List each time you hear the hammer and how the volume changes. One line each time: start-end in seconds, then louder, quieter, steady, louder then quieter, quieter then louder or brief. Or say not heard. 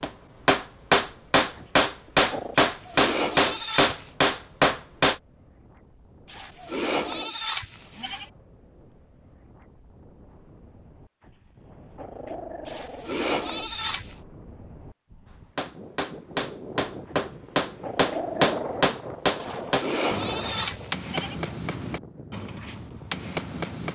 0.0-5.2 steady
15.6-23.8 louder then quieter.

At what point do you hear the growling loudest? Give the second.
18 s.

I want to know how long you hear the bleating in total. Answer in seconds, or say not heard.
7 s.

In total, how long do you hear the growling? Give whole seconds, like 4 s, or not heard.
5 s.